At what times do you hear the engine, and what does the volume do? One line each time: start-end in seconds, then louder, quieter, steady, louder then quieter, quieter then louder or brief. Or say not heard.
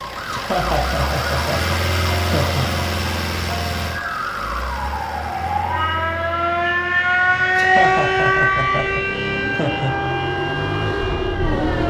0.0-11.8 quieter then louder.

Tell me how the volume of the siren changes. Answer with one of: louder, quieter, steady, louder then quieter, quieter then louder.
louder then quieter.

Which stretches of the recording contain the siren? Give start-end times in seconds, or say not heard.
0.0-11.8.